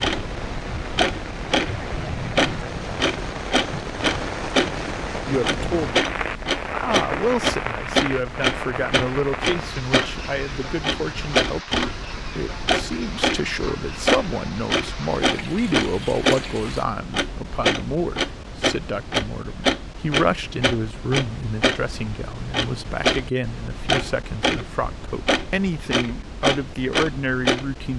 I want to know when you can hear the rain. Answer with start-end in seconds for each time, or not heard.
0.0-16.9.